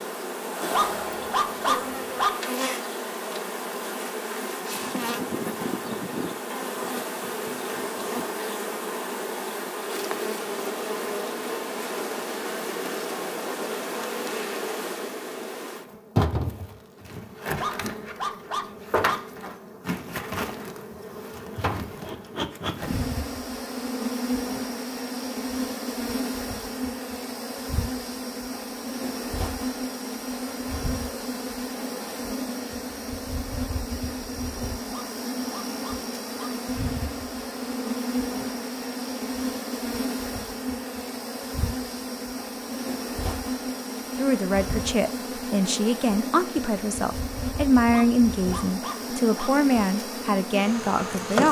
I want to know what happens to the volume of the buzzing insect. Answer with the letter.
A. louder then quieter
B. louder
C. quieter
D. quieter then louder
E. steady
E.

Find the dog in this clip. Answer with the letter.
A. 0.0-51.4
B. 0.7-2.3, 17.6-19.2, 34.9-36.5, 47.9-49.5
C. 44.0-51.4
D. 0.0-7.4
B.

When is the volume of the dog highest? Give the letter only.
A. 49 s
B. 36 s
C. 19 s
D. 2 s
D.